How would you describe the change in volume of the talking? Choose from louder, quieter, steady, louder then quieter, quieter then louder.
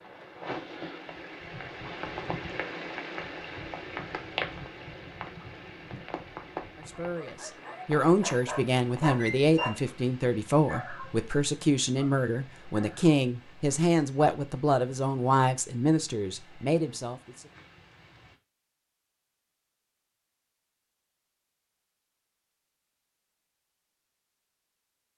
steady.